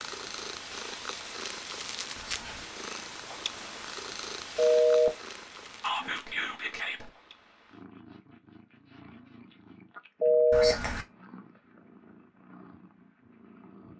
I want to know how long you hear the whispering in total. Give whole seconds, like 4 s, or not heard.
2 s.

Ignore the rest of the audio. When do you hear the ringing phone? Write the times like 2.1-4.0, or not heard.
4.5-5.1, 10.2-10.8.